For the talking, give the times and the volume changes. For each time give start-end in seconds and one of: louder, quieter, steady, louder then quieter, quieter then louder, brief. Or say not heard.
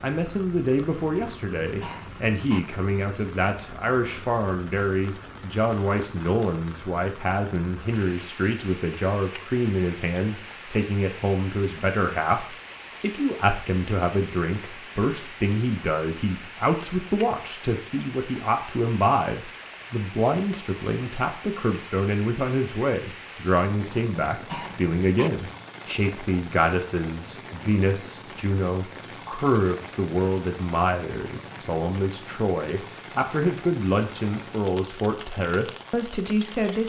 0.0-36.8 steady.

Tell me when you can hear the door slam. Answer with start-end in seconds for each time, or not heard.
not heard.